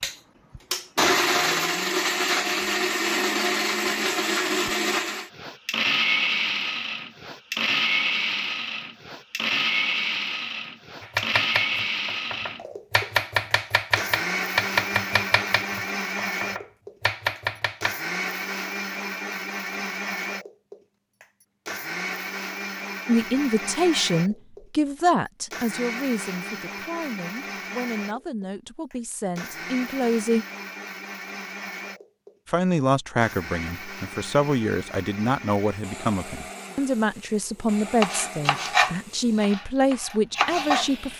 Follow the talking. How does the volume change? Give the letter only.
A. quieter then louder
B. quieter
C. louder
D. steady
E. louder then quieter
A.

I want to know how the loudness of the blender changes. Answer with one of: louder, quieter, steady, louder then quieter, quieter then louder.
quieter.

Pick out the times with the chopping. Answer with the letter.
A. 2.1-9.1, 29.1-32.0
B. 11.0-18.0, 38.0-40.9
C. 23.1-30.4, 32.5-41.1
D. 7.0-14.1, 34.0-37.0
B.